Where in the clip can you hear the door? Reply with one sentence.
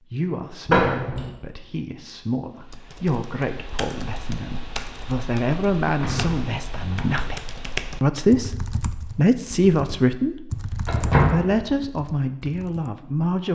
You can hear the door from 0.7 to 1.3 s, from 6.0 to 7.2 s and from 10.8 to 11.4 s.